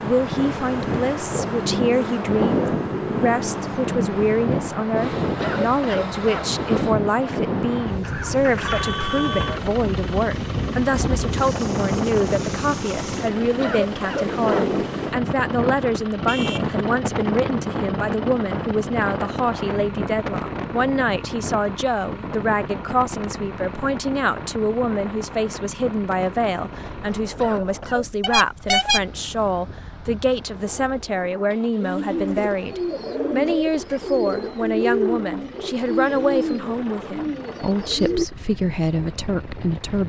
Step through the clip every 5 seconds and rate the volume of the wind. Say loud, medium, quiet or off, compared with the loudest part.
loud, loud, loud, loud, medium, quiet, quiet, quiet.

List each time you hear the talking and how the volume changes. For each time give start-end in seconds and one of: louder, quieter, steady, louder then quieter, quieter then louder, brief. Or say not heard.
0.0-40.0 steady.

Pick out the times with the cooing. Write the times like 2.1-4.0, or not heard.
31.8-38.2.